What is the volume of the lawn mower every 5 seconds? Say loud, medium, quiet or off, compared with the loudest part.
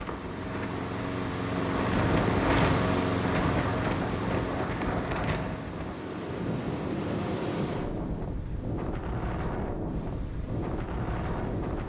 loud, quiet, quiet.